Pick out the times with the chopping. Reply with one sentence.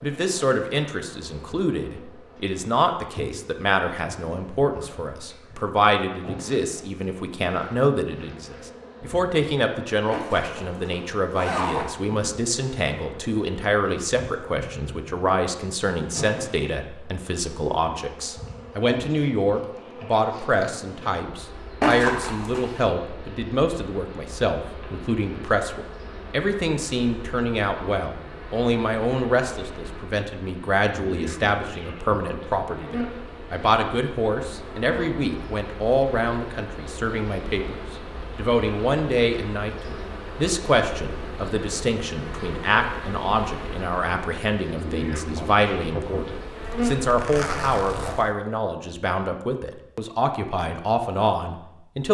The chopping can't be heard in this clip.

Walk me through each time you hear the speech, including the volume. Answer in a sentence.
You can hear the speech from 0.0 to 52.0 s, at a steady volume.